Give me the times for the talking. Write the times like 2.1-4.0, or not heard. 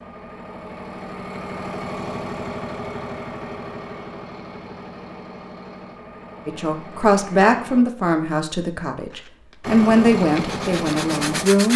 6.5-11.7.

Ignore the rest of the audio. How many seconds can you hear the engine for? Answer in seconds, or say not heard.
10 s.